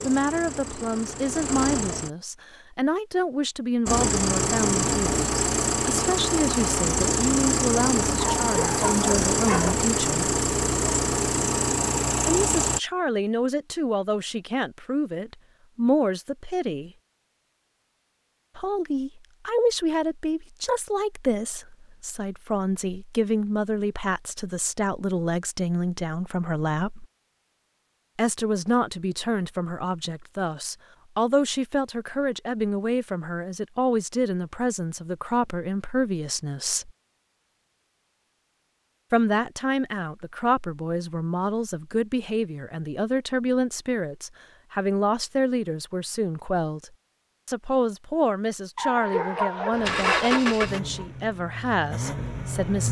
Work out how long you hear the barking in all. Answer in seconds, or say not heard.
3 s.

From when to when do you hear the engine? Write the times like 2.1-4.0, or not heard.
0.0-2.1, 3.9-12.8, 49.7-52.8.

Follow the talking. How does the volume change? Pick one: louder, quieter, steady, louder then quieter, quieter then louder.
steady.